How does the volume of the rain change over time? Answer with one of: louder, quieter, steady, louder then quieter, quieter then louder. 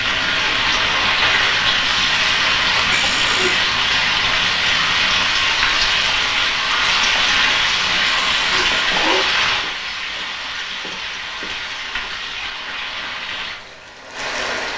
quieter.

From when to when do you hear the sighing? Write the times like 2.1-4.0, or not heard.
2.9-3.6, 8.1-9.2.